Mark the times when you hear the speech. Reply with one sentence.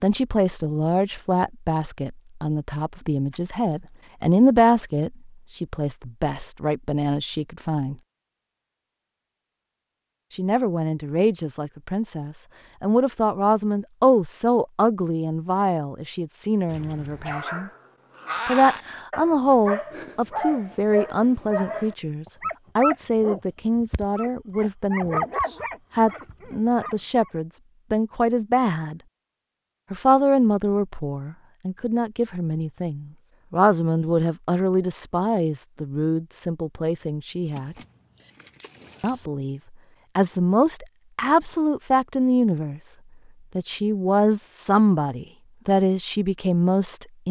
The speech can be heard from 0.0 to 8.0 s, from 10.3 to 17.7 s, from 18.4 to 29.0 s, from 29.9 to 37.8 s, from 39.0 to 42.9 s and from 43.5 to 47.2 s.